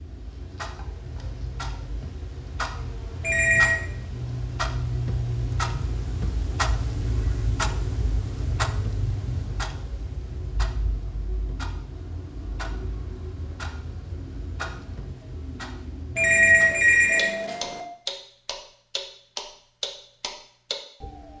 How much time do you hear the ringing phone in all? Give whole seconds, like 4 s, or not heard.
2 s.